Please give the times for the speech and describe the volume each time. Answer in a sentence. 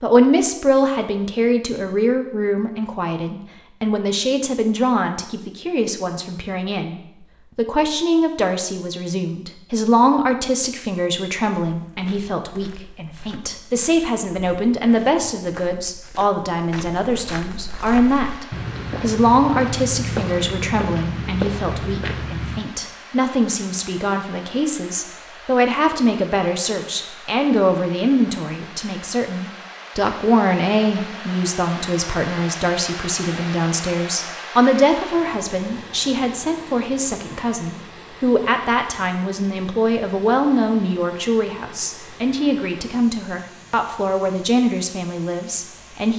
The speech can be heard from 0.0 to 46.1 s, at a steady volume.